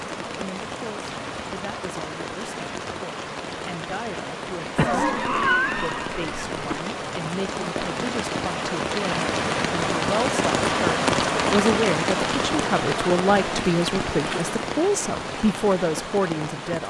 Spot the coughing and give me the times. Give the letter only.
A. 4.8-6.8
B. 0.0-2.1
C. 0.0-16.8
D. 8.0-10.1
A.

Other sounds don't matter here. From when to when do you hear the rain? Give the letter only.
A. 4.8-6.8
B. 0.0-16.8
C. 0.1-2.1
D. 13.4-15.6
B.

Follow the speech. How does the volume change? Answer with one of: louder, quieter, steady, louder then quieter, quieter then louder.
louder.